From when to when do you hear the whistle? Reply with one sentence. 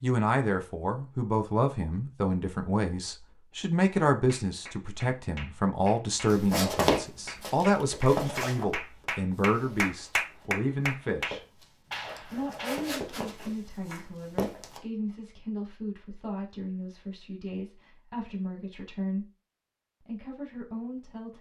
You can't hear the whistle here.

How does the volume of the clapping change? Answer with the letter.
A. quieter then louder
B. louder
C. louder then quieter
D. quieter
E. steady
C.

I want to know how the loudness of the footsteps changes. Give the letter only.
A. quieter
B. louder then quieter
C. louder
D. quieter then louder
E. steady
D.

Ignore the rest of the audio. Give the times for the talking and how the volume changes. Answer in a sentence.
You can hear the talking from 0.0 to 11.4 s, at a steady volume; from 12.2 to 19.2 s, at a steady volume; and briefly from 20.1 to 21.3 s.